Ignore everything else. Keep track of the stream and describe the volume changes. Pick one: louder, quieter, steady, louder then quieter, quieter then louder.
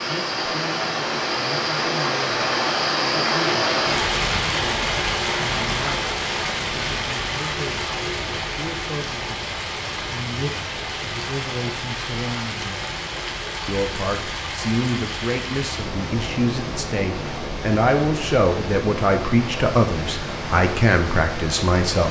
quieter.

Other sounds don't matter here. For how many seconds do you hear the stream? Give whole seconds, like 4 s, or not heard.
22 s.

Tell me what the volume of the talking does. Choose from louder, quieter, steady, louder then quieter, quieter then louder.
louder.